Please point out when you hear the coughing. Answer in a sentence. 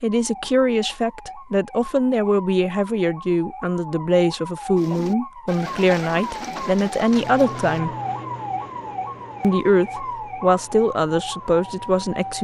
You can't hear the coughing here.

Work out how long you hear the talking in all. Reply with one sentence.
The talking can be heard for 11 seconds in total.